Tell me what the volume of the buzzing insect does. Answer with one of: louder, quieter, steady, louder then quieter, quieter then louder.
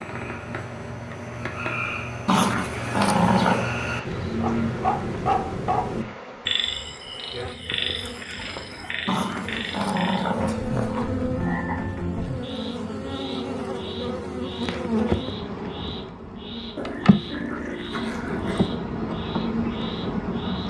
louder.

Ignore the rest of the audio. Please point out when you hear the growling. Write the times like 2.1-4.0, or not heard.
2.2-3.7, 9.1-11.1, 16.8-18.8.